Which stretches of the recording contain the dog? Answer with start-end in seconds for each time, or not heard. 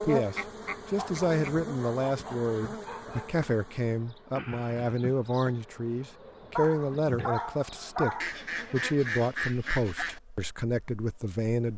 0.9-3.5, 6.5-8.3.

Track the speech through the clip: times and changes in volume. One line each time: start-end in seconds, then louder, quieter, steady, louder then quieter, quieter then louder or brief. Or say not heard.
0.0-11.7 steady.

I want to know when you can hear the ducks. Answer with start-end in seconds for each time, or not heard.
0.1-1.6, 8.2-10.2.